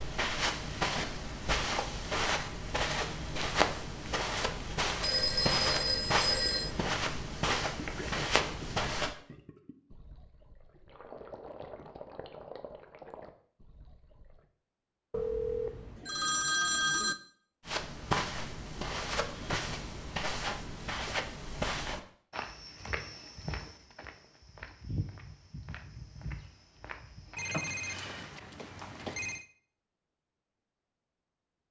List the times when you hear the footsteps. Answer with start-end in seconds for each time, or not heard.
0.0-9.2, 17.6-27.4.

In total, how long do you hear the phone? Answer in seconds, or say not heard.
6 s.